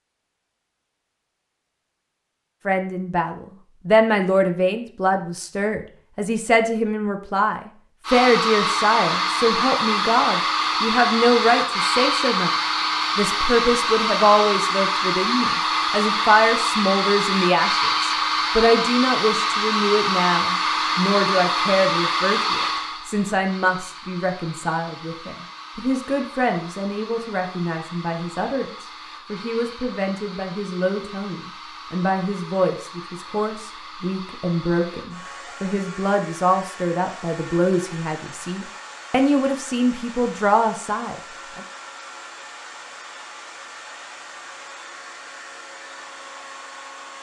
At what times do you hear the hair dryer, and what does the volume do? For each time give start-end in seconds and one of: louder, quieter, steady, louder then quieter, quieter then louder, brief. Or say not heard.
8.1-47.1 quieter.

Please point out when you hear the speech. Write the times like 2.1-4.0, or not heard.
2.6-12.5, 13.2-41.6.